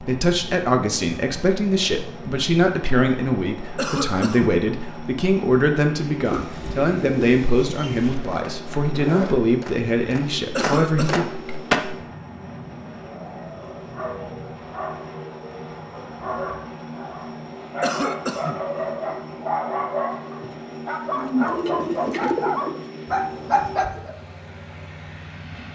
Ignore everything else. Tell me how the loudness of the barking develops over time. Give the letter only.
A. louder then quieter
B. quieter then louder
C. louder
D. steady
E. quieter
C.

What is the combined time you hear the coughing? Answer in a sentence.
You can hear the coughing for 2 seconds altogether.